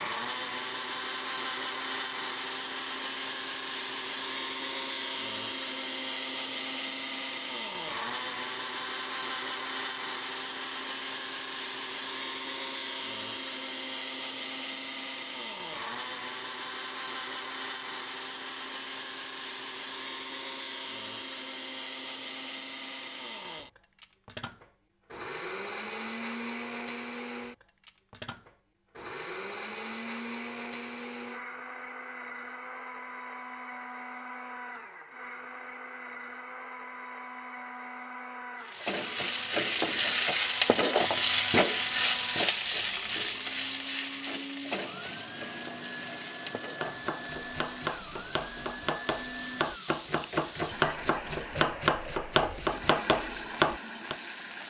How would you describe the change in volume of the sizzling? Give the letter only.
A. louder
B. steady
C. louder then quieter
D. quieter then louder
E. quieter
E.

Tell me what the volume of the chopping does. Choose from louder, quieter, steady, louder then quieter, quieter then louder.
louder.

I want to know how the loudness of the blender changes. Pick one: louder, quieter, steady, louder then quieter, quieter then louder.
quieter.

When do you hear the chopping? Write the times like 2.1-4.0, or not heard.
46.8-54.1.